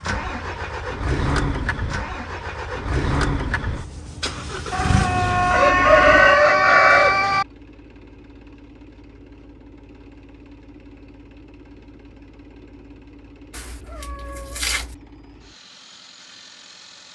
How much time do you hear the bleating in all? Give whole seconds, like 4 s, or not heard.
not heard.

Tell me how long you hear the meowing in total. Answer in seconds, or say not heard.
2 s.